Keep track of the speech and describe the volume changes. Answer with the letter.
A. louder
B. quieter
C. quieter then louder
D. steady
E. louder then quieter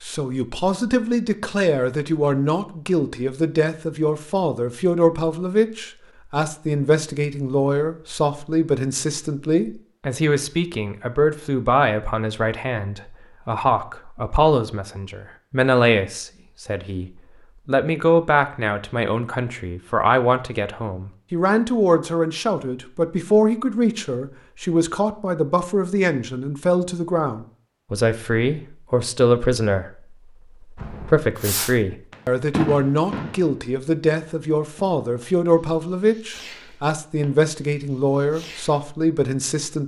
D.